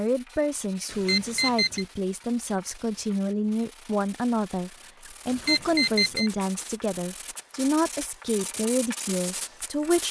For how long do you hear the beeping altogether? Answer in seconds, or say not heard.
2 s.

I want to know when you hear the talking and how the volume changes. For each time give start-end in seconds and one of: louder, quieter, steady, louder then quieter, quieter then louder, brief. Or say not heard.
0.0-10.0 steady.